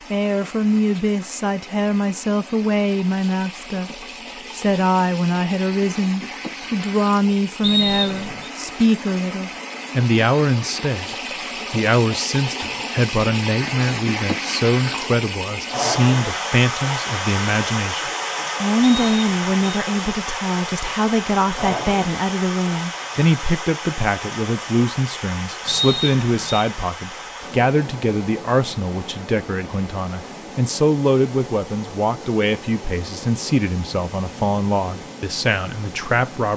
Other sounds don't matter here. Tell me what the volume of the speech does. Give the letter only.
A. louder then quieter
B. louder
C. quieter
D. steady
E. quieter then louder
D.